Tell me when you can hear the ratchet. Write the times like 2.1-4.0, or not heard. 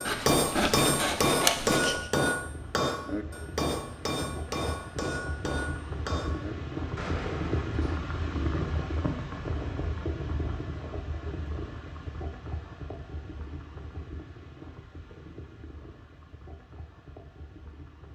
not heard.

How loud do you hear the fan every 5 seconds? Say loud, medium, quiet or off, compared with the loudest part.
medium, loud, medium, quiet.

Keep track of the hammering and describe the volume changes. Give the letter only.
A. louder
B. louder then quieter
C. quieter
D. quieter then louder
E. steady
C.